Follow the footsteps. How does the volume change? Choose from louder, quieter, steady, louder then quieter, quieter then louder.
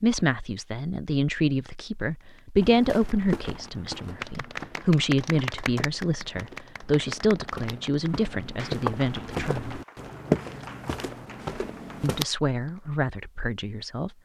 quieter then louder.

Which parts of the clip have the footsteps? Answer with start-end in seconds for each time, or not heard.
2.6-12.2.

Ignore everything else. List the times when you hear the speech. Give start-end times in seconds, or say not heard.
0.0-9.8, 12.0-14.1.